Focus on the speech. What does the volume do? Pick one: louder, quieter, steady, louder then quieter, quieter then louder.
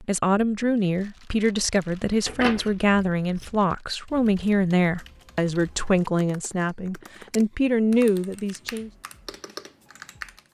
steady.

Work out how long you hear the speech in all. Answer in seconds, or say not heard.
9 s.